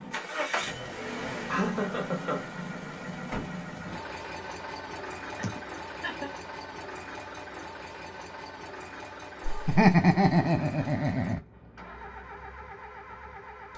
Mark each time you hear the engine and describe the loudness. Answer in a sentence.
The engine can be heard from 0.0 to 13.7 s, getting quieter.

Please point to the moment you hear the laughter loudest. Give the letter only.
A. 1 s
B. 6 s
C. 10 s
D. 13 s
C.